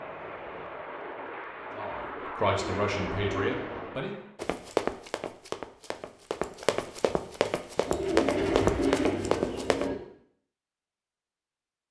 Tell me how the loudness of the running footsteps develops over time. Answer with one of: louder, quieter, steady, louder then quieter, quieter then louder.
quieter then louder.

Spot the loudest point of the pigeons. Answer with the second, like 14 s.
9 s.